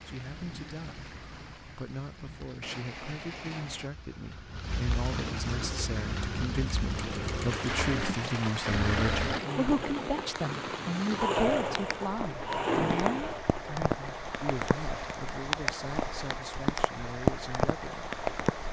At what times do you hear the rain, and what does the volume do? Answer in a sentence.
The rain can be heard from 0.0 to 18.6 s, getting louder.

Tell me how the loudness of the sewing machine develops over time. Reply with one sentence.
The volume of the sewing machine goes up.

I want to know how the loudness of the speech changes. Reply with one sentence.
The volume of the speech goes up, then down.